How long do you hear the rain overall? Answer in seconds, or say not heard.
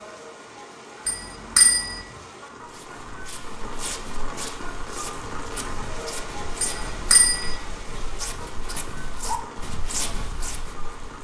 11 s.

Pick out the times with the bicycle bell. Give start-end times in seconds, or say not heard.
1.1-2.0, 6.6-7.5.